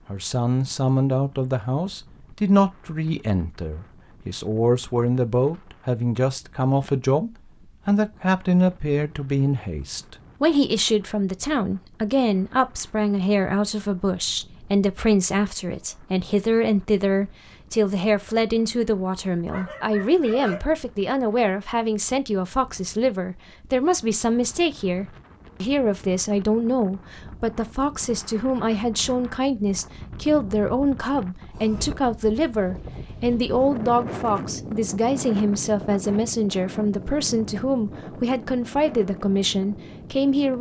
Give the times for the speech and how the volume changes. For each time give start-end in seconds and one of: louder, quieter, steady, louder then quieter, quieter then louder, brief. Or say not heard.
0.1-40.5 steady.